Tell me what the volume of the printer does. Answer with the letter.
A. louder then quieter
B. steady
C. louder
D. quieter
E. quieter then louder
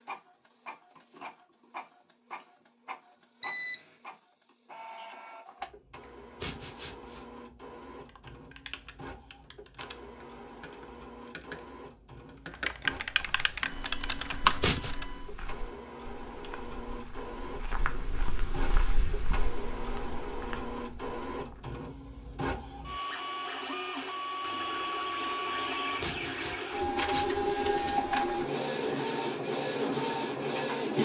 C.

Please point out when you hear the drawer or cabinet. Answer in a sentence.
You can't hear the drawer or cabinet here.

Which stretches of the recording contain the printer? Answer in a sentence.
The printer can be heard from 0.0 to 30.9 s.